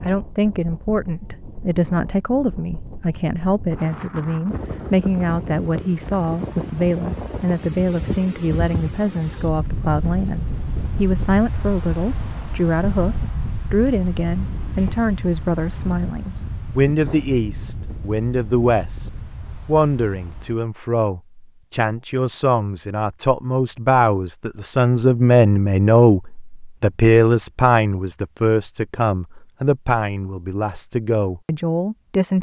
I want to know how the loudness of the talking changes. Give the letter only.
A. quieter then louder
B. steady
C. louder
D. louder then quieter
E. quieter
B.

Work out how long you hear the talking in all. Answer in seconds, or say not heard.
32 s.